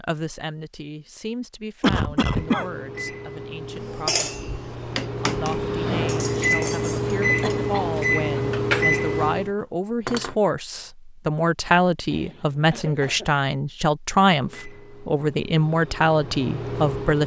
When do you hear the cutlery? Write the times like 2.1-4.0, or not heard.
3.8-10.3.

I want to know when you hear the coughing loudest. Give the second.
2 s.